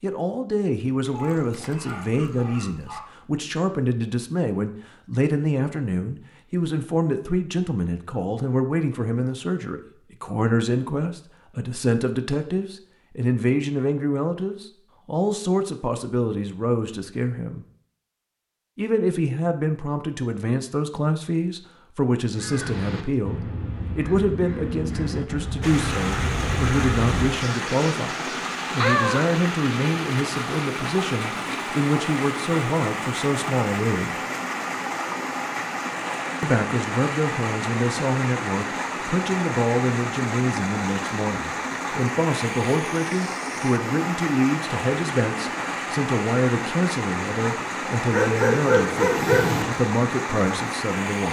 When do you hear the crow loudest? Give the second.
29 s.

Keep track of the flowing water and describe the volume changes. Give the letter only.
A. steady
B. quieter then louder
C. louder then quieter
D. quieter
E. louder
A.